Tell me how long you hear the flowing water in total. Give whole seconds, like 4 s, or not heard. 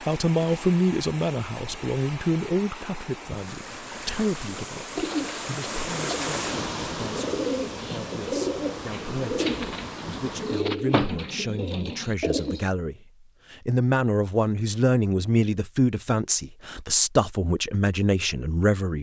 11 s.